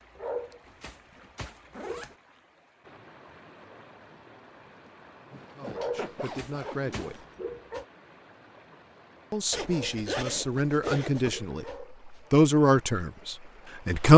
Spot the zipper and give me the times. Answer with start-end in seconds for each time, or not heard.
0.7-2.1, 4.8-7.3, 9.5-11.4.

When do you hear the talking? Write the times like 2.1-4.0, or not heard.
5.5-7.2, 9.3-14.1.